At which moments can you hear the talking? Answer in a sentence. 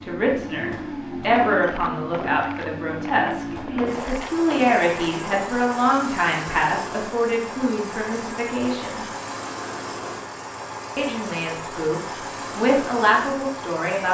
You can hear the talking from 0.0 to 9.1 s and from 10.9 to 14.0 s.